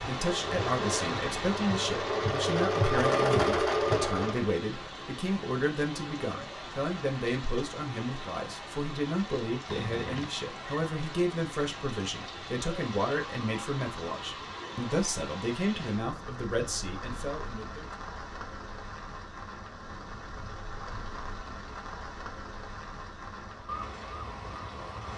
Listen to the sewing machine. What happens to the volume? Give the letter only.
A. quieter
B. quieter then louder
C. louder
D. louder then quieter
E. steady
C.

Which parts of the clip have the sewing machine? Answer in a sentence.
The sewing machine can be heard from 0.1 to 4.5 s.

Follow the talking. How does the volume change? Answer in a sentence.
The volume of the talking stays about the same.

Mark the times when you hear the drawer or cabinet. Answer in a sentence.
The drawer or cabinet can be heard from 9.7 to 10.3 s.